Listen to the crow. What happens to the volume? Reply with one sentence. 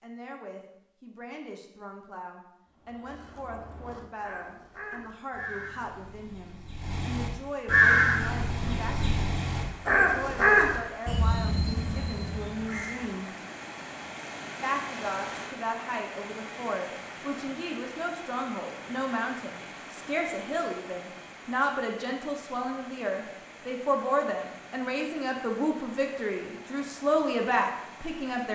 The volume of the crow goes up, then down.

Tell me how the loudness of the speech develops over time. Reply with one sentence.
The loudness of the speech goes up.